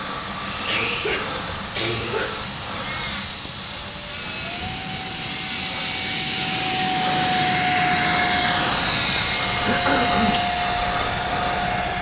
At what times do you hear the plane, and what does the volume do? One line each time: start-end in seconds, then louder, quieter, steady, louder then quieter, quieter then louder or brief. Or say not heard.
0.0-11.9 louder.